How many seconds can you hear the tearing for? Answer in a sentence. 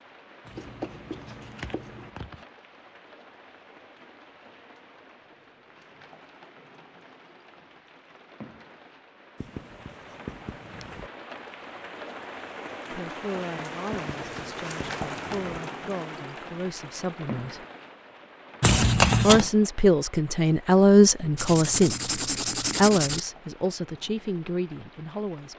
The tearing can be heard for 3 seconds in total.